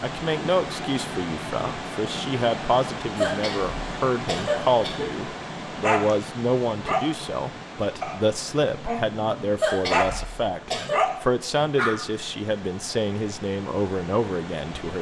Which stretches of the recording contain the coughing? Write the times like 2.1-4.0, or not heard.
3.1-5.1, 9.6-11.0.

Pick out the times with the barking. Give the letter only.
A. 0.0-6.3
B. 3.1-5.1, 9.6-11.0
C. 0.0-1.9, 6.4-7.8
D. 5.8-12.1
D.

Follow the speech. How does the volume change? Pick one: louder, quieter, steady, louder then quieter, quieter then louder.
steady.